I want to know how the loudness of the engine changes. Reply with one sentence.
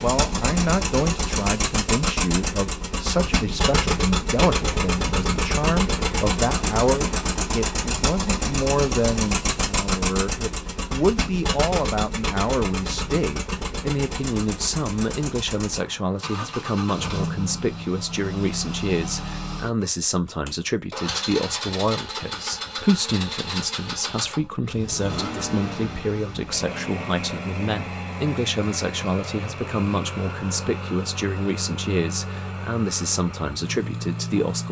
The volume of the engine goes down.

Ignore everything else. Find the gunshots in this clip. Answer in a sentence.
You can't hear the gunshots here.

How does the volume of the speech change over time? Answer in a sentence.
The loudness of the speech stays about the same.